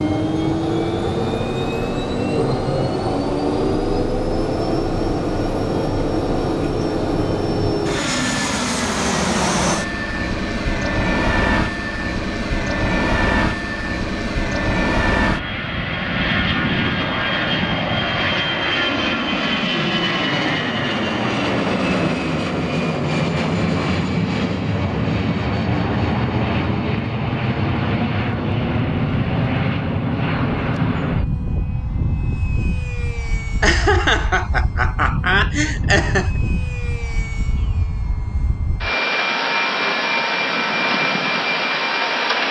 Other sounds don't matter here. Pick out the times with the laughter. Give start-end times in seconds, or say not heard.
33.6-36.4.